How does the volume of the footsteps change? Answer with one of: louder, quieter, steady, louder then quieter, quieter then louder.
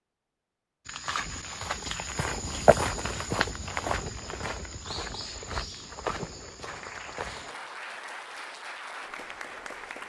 louder then quieter.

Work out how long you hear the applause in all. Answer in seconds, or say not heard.
3 s.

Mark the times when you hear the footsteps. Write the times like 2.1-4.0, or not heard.
0.8-7.5.